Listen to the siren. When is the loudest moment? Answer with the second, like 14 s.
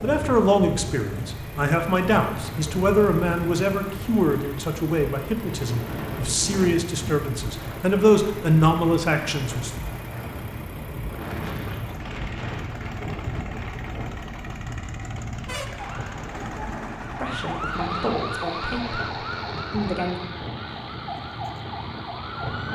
18 s.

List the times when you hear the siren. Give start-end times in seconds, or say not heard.
15.8-22.6.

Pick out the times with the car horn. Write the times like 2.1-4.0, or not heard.
14.6-15.7.